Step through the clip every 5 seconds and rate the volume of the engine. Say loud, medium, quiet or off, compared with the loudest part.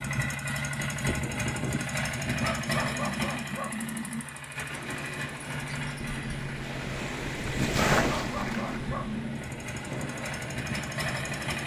loud, medium, loud.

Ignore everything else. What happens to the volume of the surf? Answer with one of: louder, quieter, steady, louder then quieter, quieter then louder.
louder then quieter.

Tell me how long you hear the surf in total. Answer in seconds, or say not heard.
7 s.